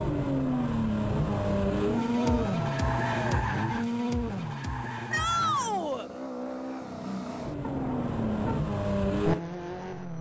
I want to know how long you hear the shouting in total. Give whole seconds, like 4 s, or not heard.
2 s.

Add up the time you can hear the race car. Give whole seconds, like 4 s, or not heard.
10 s.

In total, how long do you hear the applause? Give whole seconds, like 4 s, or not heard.
not heard.